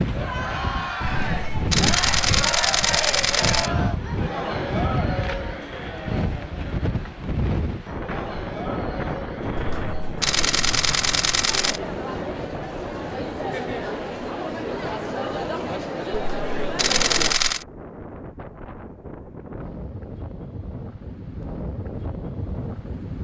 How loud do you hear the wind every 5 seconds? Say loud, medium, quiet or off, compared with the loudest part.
loud, loud, medium, medium, medium.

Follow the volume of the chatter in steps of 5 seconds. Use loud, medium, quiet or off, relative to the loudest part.
loud, medium, loud, loud, off.